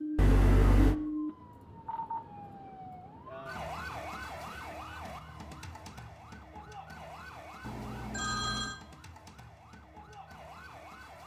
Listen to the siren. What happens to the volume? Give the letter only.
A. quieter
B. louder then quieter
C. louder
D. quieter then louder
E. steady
A.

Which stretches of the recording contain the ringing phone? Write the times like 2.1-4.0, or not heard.
0.1-0.9, 7.6-8.8.